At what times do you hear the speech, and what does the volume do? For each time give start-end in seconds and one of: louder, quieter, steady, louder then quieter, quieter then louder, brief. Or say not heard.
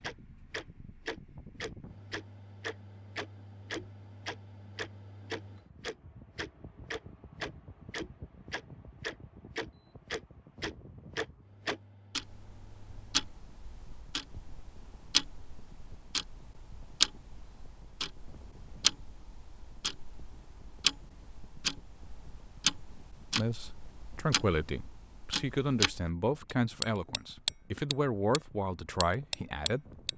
23.4-30.1 steady.